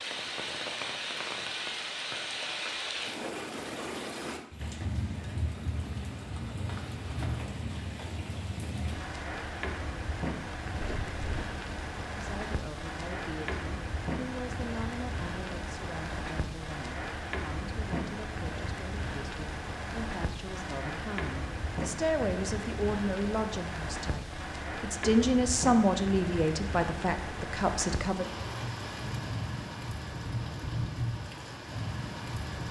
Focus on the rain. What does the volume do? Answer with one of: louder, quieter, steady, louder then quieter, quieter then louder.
steady.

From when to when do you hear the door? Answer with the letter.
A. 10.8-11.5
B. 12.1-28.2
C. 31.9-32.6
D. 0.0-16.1
A.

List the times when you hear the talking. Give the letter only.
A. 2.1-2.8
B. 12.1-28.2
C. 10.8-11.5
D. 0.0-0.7
B.